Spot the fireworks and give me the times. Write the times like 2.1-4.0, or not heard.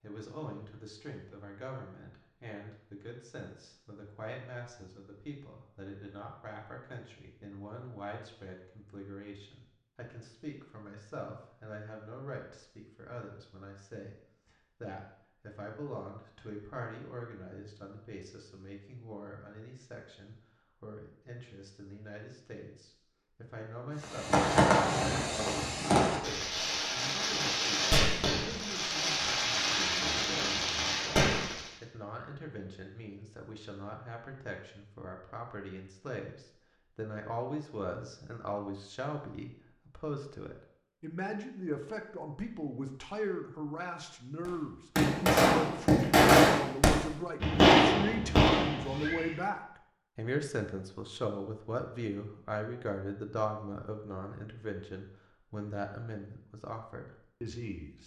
24.0-31.7, 44.5-49.4.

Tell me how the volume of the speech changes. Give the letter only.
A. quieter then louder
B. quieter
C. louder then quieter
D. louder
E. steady
D.